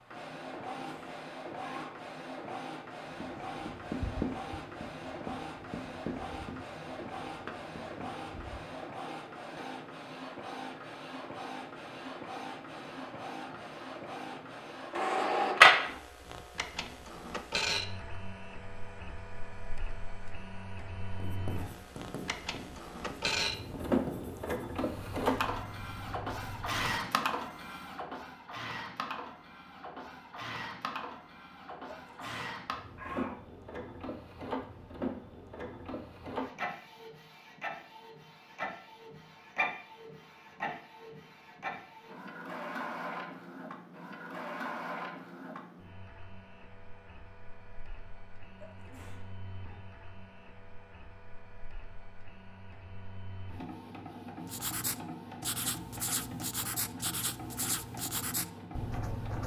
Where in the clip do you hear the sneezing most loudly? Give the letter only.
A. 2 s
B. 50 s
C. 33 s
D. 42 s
C.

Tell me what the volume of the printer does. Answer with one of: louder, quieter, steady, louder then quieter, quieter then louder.
louder then quieter.